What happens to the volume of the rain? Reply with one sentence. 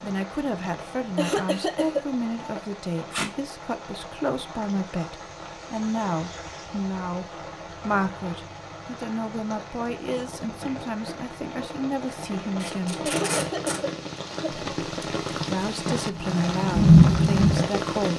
The volume of the rain goes up.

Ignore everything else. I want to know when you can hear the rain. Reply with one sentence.
The rain can be heard from 0.0 to 18.1 s.